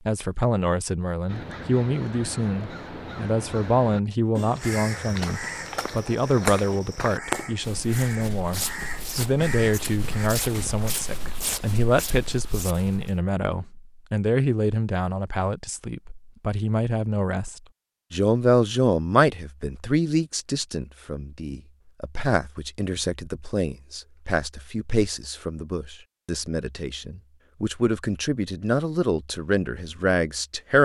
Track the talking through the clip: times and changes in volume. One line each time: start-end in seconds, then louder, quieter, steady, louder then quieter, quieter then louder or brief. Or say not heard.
0.1-30.8 steady.